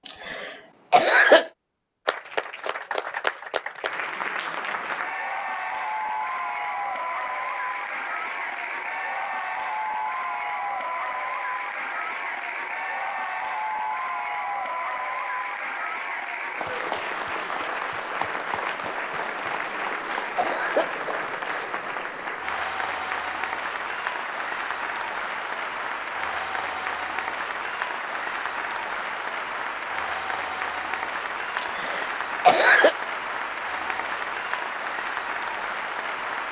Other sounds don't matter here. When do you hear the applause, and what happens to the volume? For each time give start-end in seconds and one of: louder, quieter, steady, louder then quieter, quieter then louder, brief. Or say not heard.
2.0-36.4 steady.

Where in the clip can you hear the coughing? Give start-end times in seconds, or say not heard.
0.1-1.5, 19.5-21.1, 31.6-33.0.